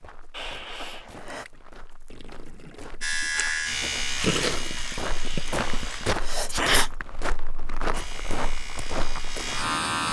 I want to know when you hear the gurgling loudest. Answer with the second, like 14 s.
4 s.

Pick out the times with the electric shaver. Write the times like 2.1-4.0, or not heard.
3.0-6.2, 7.9-10.0.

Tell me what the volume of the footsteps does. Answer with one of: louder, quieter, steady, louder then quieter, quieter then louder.
louder.